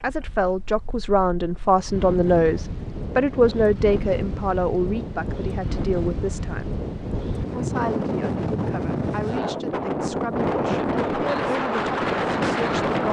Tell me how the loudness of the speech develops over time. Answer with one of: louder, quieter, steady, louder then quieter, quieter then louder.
quieter.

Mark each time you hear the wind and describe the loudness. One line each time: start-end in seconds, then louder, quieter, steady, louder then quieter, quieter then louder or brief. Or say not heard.
0.0-13.0 louder.